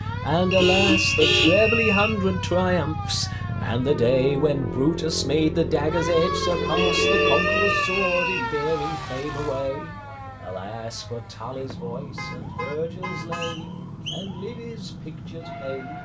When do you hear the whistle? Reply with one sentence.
The whistle can be heard from 0.5 to 2.1 s, from 6.8 to 8.4 s and from 13.0 to 14.3 s.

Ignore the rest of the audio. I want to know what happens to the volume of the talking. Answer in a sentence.
The loudness of the talking goes down.